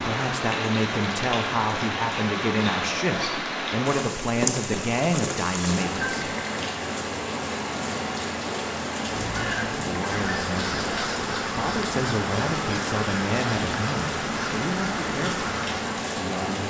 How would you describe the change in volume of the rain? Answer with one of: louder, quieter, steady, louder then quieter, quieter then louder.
steady.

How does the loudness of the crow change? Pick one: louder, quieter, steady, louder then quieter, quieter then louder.
steady.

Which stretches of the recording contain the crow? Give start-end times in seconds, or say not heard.
9.1-15.8.